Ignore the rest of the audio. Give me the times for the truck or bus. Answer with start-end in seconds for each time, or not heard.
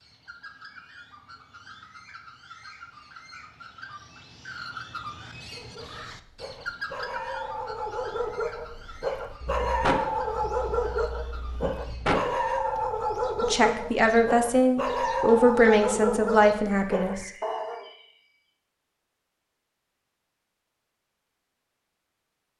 not heard.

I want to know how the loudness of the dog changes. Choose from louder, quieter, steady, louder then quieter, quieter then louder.
louder.